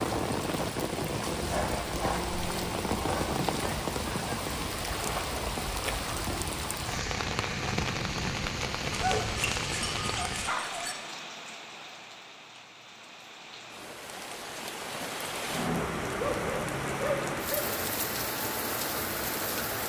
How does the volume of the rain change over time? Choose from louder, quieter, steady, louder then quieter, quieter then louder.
quieter then louder.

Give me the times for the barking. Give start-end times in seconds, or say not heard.
1.4-3.4, 8.9-10.9, 16.1-17.6.